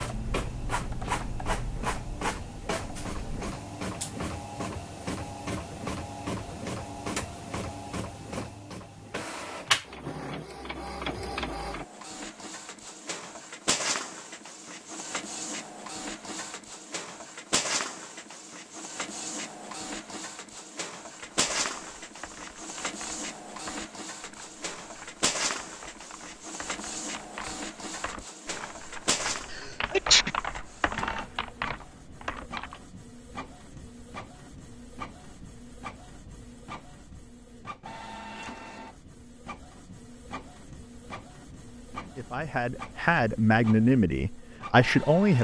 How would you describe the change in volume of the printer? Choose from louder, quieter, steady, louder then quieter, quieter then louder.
quieter.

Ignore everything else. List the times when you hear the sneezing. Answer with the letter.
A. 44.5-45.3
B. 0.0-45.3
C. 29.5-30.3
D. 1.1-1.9
C.